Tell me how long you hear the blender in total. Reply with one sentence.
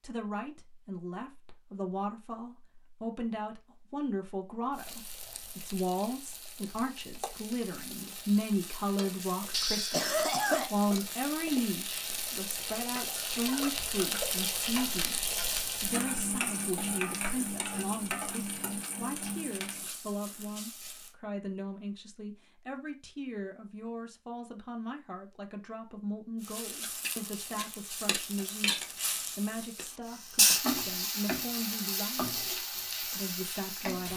The blender can't be heard in this clip.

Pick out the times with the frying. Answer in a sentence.
The frying can be heard from 4.7 to 21.1 s and from 26.4 to 34.1 s.